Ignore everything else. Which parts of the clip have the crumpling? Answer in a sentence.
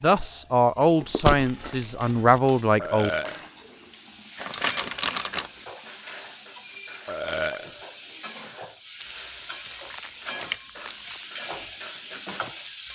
The crumpling can be heard from 1.0 to 2.4 s, from 4.3 to 5.5 s and from 9.0 to 11.2 s.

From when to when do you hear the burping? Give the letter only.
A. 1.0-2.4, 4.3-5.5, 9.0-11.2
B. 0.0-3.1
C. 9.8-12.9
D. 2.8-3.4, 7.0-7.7
D.